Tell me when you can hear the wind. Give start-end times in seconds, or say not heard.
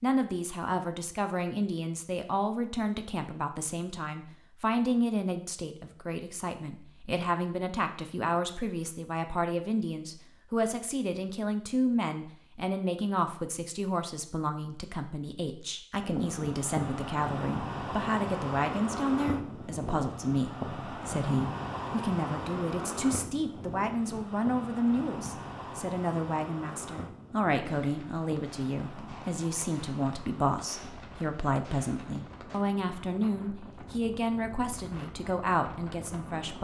15.9-36.5.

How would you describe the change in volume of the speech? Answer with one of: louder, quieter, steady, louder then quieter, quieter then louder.
steady.